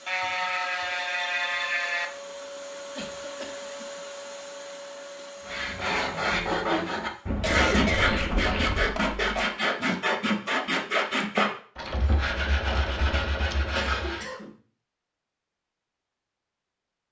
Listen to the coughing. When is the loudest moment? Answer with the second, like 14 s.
8 s.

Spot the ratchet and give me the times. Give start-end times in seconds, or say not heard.
0.1-2.1, 7.2-8.8, 11.8-13.6.